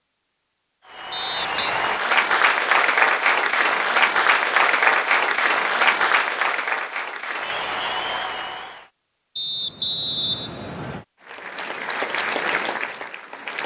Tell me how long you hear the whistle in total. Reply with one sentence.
You can hear the whistle for 2 seconds altogether.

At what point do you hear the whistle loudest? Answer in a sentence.
The volume of the whistle peaks at 10 seconds.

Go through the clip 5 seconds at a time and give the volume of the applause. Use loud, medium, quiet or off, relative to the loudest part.
loud, loud, medium.